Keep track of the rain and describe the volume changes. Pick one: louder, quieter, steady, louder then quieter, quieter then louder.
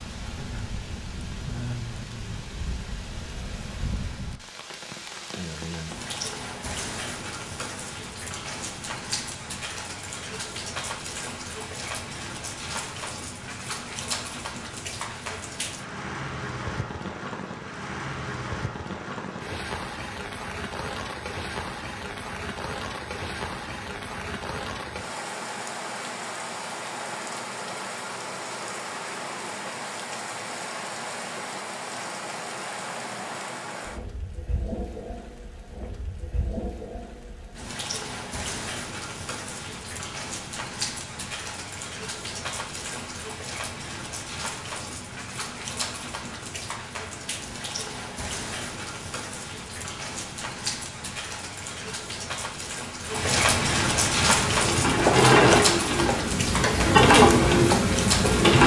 louder.